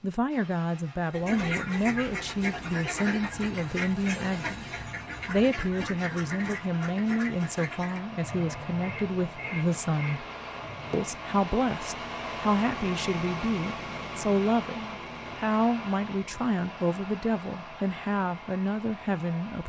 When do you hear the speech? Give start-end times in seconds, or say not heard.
0.0-10.2, 10.9-19.6.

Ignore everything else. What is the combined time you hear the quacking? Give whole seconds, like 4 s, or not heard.
10 s.